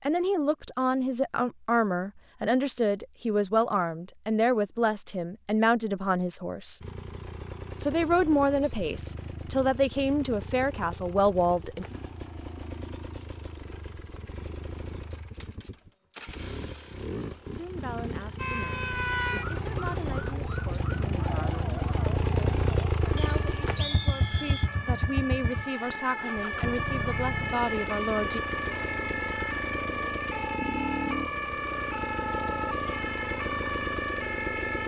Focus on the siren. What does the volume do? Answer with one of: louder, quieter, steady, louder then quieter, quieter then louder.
quieter then louder.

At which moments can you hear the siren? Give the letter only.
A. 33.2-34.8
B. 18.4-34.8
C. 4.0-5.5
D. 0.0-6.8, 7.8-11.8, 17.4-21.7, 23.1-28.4
B.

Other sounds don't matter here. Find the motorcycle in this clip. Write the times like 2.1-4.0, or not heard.
6.8-34.8.